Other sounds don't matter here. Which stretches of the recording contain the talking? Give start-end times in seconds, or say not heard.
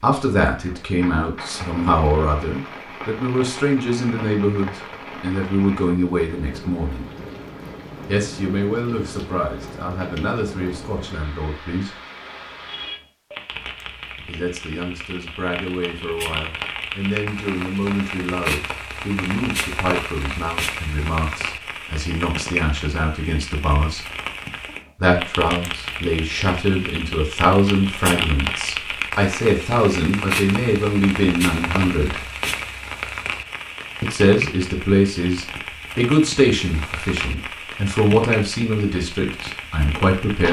0.0-7.0, 8.1-11.9, 14.2-24.1, 25.0-32.2, 34.0-40.4.